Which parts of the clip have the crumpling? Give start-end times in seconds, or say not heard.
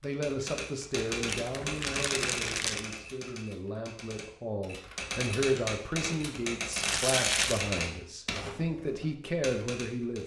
1.2-2.9, 6.7-7.7.